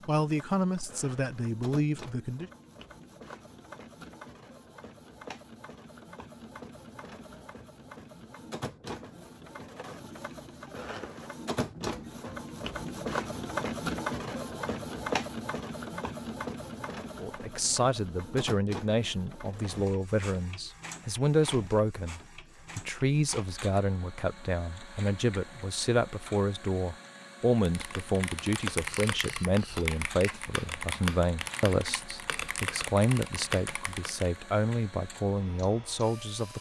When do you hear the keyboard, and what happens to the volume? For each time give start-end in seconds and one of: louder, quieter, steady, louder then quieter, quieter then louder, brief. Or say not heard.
27.6-34.4 steady.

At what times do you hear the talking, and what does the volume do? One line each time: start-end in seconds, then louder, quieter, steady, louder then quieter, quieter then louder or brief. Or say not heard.
0.1-2.5 brief
17.1-36.5 steady.